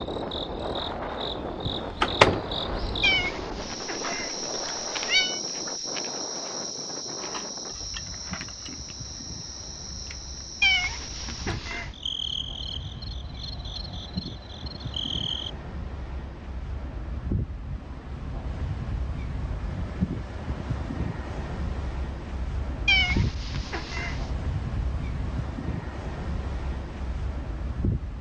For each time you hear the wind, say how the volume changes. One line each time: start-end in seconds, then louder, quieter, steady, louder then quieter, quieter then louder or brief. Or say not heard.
0.0-28.1 quieter then louder.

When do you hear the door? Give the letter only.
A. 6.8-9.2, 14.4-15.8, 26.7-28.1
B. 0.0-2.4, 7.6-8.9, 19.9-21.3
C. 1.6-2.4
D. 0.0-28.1
C.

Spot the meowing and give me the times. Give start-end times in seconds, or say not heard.
3.0-5.4, 10.6-11.9, 22.9-24.3.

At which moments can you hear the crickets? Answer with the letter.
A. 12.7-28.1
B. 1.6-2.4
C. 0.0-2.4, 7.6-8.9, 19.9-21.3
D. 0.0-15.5
D.